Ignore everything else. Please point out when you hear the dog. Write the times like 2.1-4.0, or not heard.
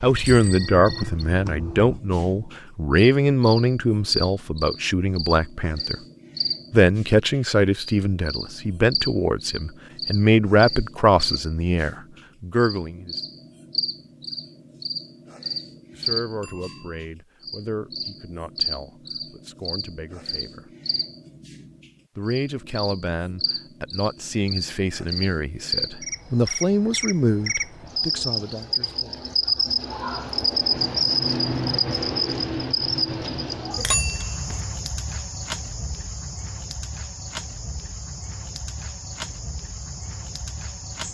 not heard.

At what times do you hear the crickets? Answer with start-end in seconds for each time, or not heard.
0.0-41.0.